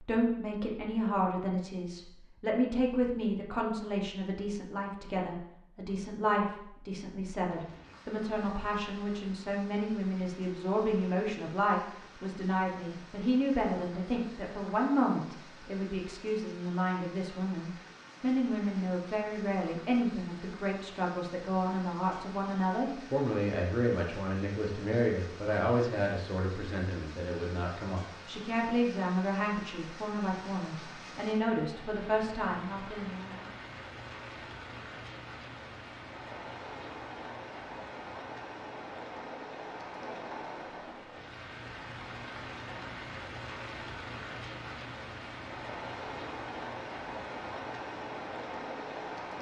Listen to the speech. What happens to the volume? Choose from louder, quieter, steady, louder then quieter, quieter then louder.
steady.